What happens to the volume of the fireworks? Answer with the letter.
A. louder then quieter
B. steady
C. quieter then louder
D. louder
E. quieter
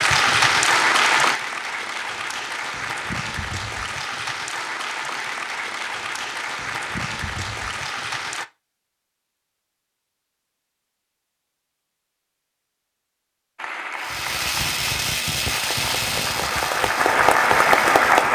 E.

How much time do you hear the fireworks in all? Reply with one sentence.
You can hear the fireworks for 4 seconds altogether.